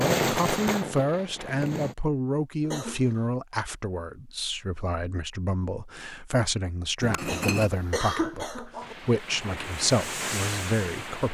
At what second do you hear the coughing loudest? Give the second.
8 s.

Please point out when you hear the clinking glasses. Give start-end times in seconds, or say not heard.
7.0-7.7.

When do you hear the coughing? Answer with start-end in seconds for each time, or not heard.
2.6-3.2, 7.2-8.9.